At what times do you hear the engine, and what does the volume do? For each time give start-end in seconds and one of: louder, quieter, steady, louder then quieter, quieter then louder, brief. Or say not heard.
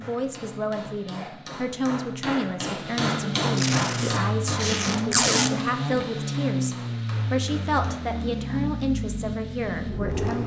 0.0-10.4 louder.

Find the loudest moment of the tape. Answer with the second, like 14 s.
5 s.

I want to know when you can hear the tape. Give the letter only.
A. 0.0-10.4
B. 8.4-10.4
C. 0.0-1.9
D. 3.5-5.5
D.